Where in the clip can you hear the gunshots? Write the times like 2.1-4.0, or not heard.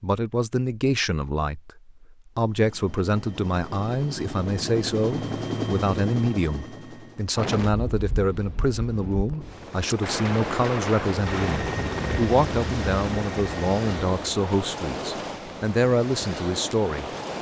10.0-11.8.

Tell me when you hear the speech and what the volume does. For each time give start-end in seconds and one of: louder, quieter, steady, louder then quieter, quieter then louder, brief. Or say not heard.
0.0-17.1 steady.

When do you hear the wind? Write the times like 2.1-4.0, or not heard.
7.3-17.3.